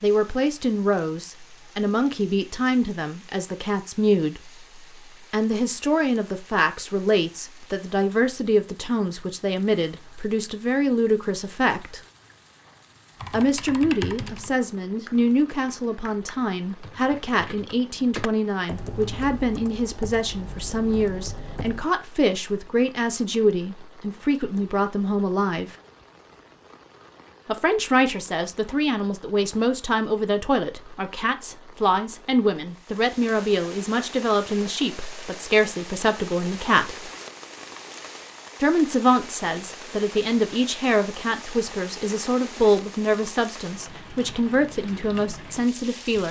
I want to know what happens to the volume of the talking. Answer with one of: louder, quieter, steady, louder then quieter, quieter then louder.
steady.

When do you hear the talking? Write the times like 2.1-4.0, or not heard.
0.0-4.5, 5.3-12.0, 13.3-25.7, 27.4-37.1, 38.6-46.2.